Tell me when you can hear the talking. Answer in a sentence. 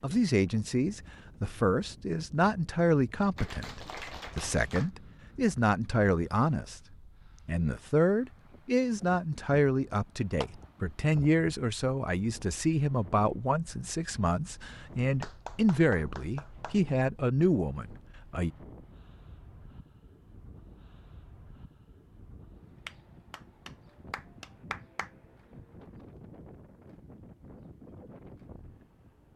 You can hear the talking from 0.0 to 6.8 s and from 7.5 to 18.5 s.